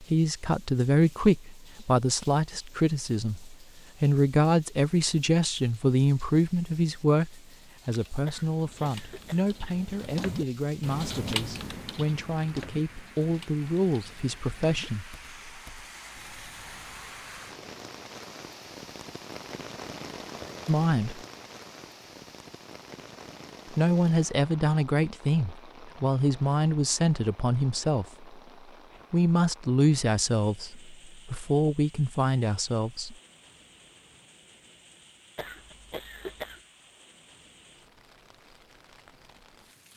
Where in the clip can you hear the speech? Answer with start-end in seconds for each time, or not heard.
0.0-15.5, 20.6-21.2, 23.7-28.2, 29.1-33.1.